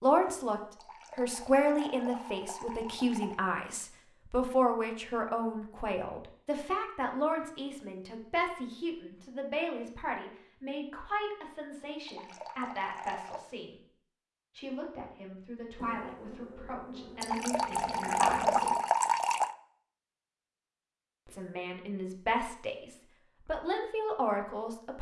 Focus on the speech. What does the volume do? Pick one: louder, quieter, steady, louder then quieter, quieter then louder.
quieter then louder.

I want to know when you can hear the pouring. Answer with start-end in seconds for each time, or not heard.
0.8-3.4, 12.1-13.4, 17.2-19.6.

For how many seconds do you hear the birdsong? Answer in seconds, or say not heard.
not heard.